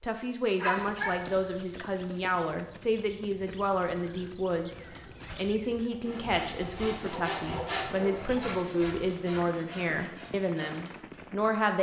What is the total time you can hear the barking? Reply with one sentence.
The barking can be heard for 3 seconds in total.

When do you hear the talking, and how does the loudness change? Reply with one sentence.
The talking can be heard from 0.0 to 11.7 s, at a steady volume.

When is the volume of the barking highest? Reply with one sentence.
The volume of the barking peaks at 1 second.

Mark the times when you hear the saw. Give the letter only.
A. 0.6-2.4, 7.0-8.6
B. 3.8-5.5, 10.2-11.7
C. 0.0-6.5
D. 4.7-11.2
D.